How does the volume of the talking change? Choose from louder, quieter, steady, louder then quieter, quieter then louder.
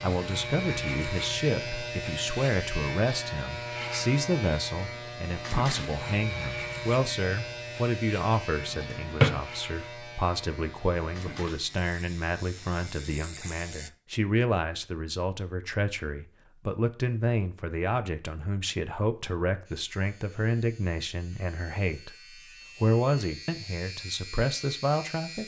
steady.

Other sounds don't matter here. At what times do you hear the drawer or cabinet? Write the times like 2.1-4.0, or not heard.
8.8-9.4.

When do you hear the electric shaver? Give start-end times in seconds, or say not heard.
0.0-13.9, 19.6-25.4.